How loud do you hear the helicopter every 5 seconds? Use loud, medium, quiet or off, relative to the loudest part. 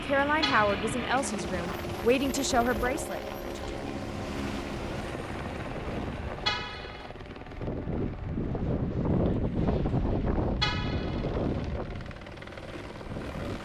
loud, medium, medium.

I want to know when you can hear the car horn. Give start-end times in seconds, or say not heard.
0.4-0.9, 6.5-7.2, 10.6-11.3.